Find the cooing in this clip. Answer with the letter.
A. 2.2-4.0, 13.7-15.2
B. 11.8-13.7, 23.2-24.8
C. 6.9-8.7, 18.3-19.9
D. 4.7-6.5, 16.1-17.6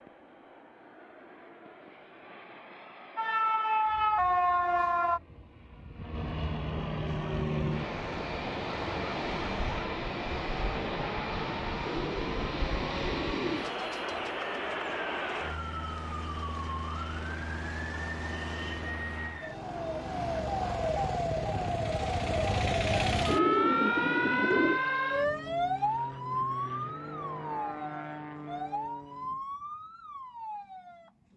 B.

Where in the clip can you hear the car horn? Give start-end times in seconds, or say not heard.
not heard.